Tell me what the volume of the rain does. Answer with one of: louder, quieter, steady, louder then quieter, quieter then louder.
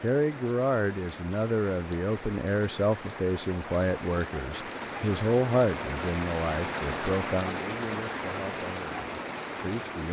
louder.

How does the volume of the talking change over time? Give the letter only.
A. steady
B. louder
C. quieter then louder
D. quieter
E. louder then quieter
D.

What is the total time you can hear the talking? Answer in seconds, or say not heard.
10 s.